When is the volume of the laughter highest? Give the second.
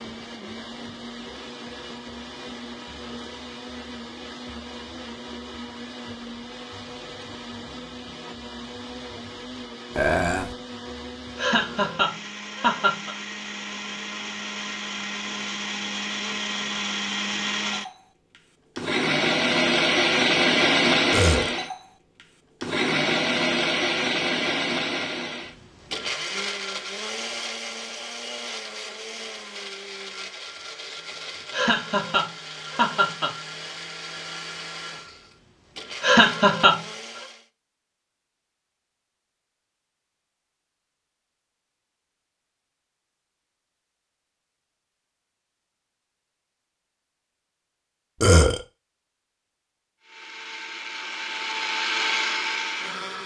36 s.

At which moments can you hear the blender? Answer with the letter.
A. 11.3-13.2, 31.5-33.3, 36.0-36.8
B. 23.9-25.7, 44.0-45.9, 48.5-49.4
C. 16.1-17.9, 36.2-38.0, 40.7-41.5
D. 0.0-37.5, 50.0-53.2
D.